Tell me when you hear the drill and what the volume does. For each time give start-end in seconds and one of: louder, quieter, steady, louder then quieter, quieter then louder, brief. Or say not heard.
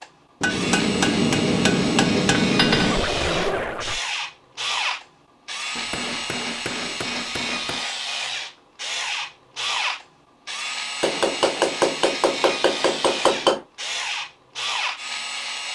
0.0-15.7 steady.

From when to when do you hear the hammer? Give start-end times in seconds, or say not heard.
0.4-3.1, 5.8-7.8, 11.0-13.7.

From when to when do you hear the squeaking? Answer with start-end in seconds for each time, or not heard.
2.8-4.0.